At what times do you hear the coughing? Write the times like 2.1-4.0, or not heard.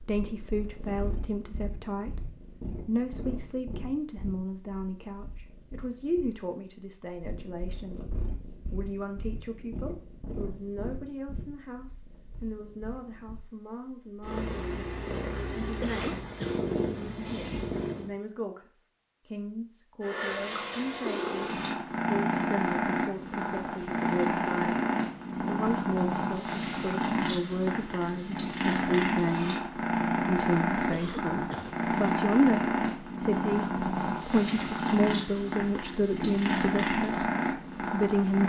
15.8-16.6, 30.9-31.8.